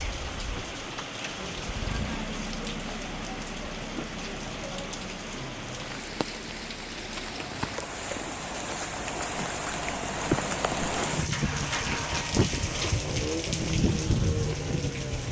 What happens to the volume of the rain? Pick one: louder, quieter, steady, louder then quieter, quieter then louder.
louder.